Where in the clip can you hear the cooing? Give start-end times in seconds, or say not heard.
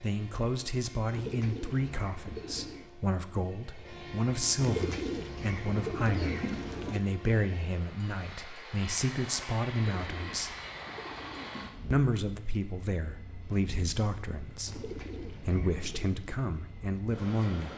1.1-2.9, 4.5-7.0, 9.9-11.8, 14.7-16.2.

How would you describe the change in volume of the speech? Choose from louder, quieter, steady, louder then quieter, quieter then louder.
steady.